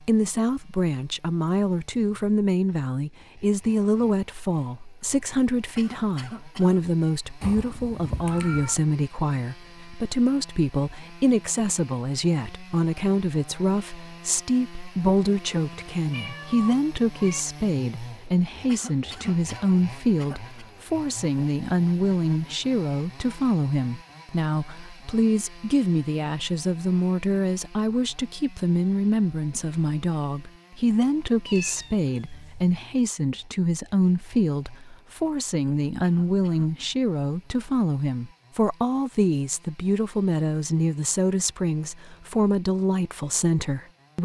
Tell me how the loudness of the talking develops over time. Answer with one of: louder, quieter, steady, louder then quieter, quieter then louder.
steady.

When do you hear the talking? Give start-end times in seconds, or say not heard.
0.0-44.2.